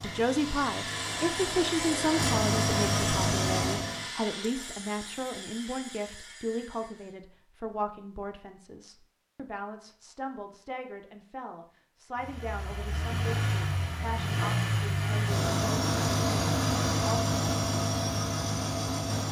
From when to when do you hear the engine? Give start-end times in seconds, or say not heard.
0.0-4.0, 12.2-19.2.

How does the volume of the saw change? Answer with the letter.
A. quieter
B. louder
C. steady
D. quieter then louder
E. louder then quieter
A.